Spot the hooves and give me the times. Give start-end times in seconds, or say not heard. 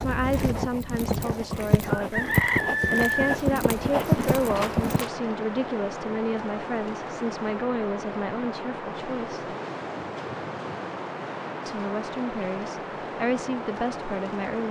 0.0-5.0.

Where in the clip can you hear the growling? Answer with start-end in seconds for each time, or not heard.
not heard.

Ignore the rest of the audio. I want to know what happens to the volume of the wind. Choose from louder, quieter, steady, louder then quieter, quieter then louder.
steady.